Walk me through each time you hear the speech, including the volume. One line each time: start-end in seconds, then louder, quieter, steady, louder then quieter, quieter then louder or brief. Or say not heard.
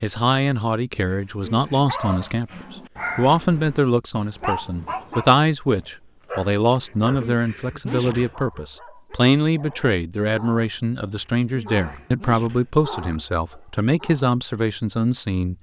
0.0-15.5 steady.